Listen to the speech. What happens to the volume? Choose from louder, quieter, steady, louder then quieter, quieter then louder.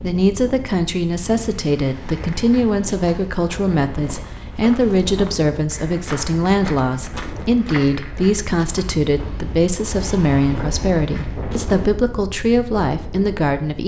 steady.